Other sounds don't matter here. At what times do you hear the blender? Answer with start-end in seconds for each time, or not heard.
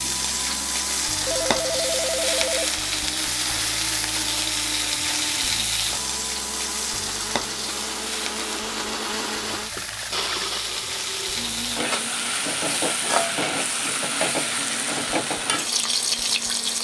0.0-16.7.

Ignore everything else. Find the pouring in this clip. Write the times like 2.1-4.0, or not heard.
9.5-10.6.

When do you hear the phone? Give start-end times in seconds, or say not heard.
1.2-2.8.